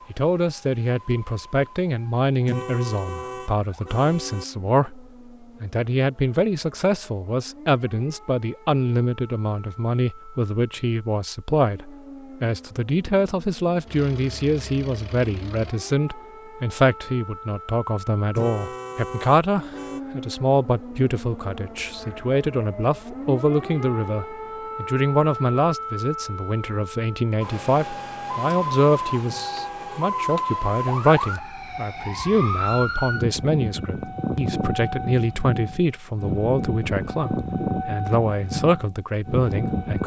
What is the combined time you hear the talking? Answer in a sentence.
The talking can be heard for 39 seconds in total.